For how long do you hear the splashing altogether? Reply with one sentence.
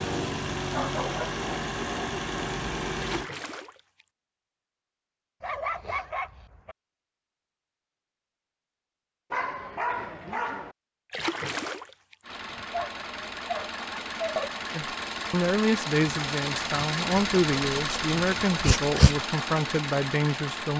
The splashing can be heard for 2 seconds in total.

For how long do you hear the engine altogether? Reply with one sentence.
You can hear the engine for 12 seconds altogether.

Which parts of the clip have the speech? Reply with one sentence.
You can hear the speech from 14.8 to 20.7 s.